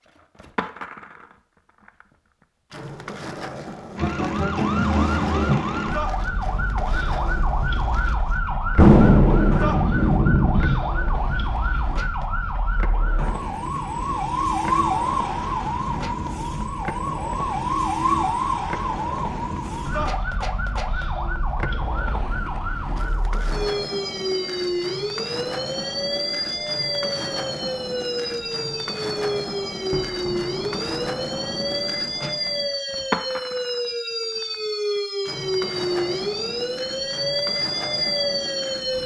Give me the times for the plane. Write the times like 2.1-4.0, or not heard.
not heard.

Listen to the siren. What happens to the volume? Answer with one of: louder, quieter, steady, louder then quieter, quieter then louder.
steady.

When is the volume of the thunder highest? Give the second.
9 s.